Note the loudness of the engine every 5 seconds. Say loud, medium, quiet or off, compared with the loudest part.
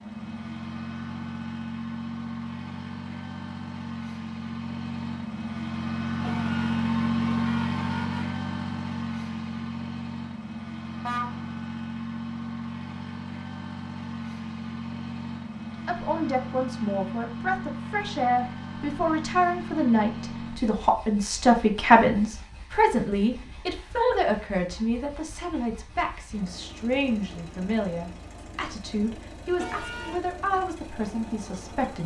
medium, loud, medium, medium, quiet, quiet, quiet.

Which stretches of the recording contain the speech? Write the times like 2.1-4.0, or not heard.
15.8-32.0.